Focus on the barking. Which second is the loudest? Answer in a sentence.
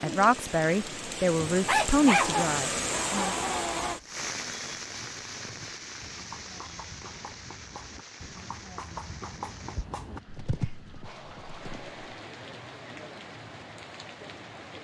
The loudest moment of the barking is at 2 seconds.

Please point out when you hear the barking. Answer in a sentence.
You can hear the barking from 1.6 to 4.0 s.